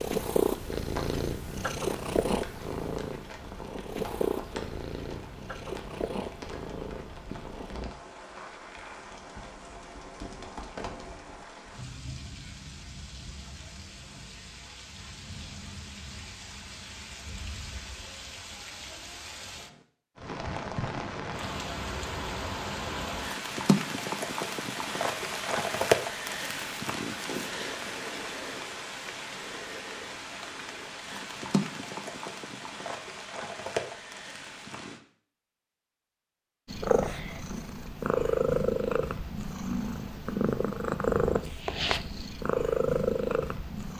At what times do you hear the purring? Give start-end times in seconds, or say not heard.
0.0-8.0, 36.6-43.9.